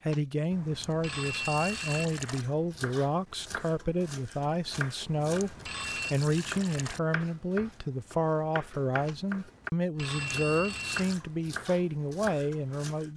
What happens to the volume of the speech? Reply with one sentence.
The loudness of the speech stays about the same.